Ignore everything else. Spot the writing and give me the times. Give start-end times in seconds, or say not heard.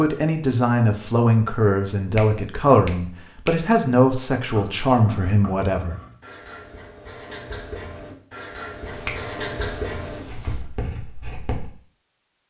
4.5-11.7.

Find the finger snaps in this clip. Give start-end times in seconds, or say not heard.
2.1-3.6, 8.8-10.7.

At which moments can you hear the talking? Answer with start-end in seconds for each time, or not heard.
0.0-6.0.